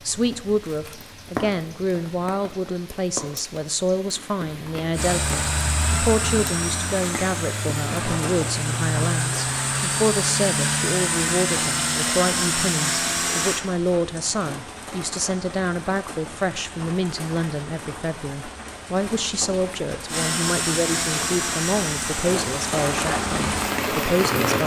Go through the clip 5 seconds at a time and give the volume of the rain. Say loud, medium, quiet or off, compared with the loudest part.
medium, medium, medium, medium, loud.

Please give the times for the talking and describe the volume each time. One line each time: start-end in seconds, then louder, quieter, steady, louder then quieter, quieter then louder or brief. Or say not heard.
0.1-24.6 steady.